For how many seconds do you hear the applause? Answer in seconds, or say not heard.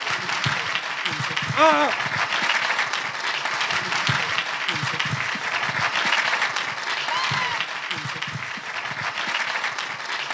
10 s.